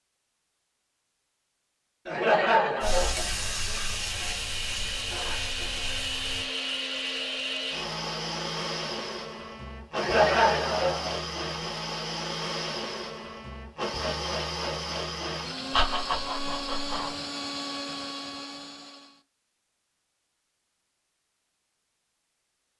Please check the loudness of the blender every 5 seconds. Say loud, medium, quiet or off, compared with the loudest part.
medium, loud, loud, loud, off.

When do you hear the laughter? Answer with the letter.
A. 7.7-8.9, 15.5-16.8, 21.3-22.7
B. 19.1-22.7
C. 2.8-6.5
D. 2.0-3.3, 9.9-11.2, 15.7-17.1
D.